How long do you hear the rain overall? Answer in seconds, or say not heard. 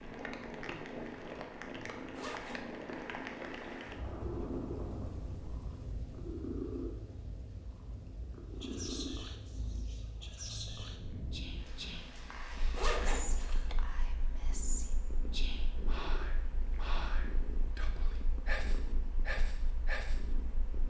13 s.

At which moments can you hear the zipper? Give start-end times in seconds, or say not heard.
2.1-2.6, 12.8-13.8.